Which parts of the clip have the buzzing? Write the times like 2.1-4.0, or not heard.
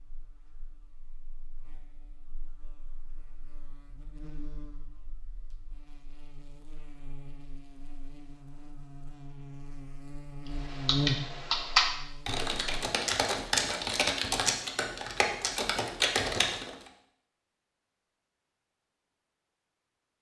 0.0-12.8.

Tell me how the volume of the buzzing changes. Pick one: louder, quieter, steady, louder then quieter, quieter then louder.
louder.